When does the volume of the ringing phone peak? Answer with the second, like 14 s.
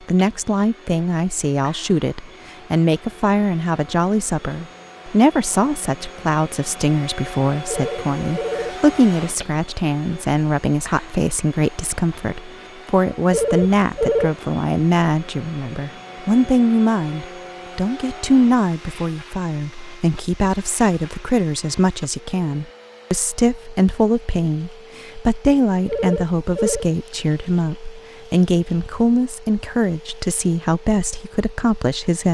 14 s.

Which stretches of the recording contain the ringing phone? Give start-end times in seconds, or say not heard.
7.7-8.8, 13.3-14.3, 25.9-26.9.